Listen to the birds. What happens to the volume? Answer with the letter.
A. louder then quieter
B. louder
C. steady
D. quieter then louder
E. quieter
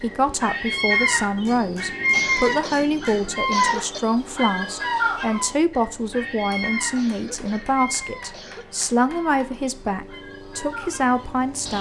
E.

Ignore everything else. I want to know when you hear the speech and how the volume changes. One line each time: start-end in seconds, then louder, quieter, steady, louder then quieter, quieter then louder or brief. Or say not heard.
0.0-11.7 steady.